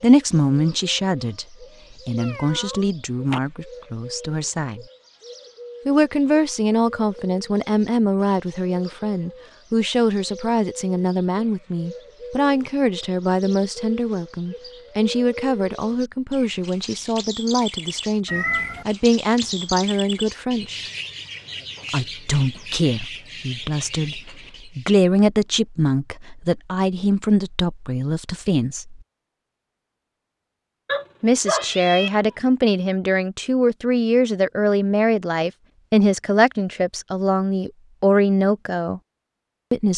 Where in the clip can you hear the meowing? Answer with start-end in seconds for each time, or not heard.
2.1-3.4, 18.2-18.9, 30.9-32.3.